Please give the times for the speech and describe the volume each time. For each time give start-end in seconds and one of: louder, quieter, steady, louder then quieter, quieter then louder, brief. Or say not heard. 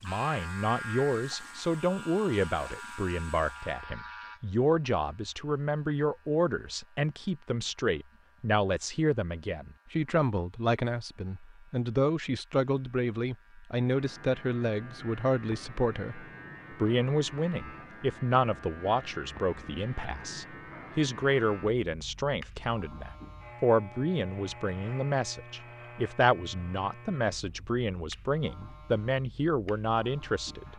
0.0-30.7 steady.